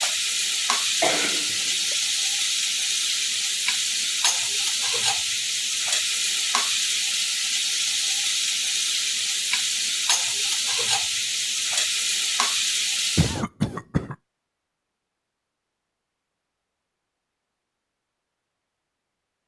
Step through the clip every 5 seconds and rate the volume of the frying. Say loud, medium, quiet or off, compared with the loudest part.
loud, loud, loud, off.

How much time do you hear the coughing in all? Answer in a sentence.
You can hear the coughing for 2 seconds altogether.